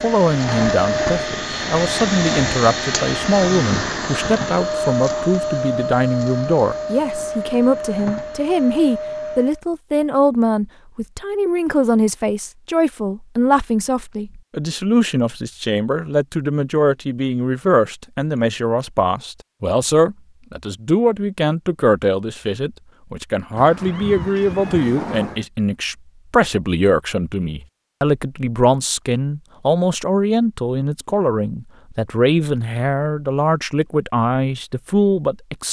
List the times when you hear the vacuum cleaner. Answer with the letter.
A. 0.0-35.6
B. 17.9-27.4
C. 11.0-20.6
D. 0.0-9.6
D.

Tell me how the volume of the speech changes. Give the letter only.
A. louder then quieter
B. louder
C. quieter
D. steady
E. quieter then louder
D.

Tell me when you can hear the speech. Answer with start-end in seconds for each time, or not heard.
0.0-35.6.